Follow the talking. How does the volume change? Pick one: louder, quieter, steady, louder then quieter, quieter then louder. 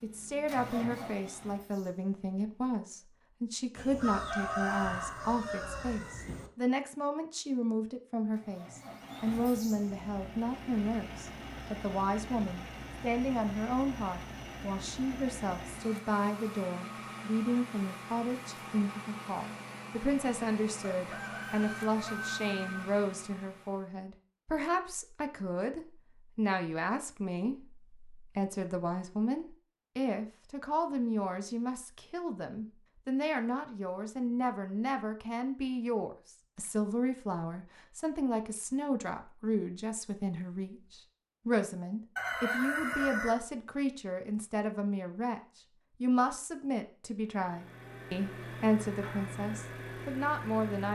steady.